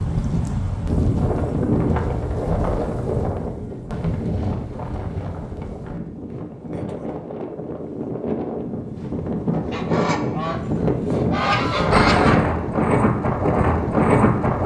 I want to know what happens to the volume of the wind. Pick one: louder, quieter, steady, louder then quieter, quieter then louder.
quieter then louder.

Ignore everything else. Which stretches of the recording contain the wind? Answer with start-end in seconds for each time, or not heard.
0.0-14.6.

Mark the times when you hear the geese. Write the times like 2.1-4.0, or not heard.
9.5-12.4.